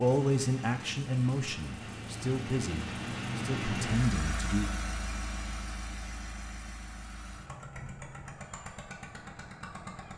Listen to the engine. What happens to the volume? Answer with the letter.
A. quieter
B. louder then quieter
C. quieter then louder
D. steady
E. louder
B.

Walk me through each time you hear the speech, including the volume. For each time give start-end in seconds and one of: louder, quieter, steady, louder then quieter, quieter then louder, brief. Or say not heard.
0.0-4.7 quieter then louder.